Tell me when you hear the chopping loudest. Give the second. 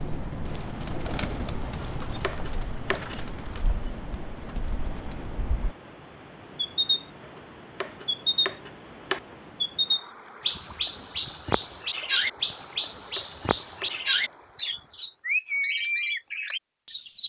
9 s.